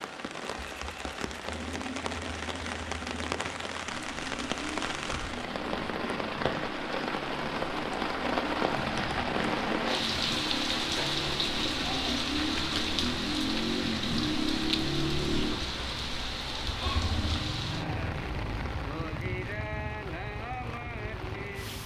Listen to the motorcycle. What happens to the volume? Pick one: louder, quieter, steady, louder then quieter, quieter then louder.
louder then quieter.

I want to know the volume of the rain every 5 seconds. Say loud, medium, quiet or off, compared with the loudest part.
medium, loud, loud, medium, medium.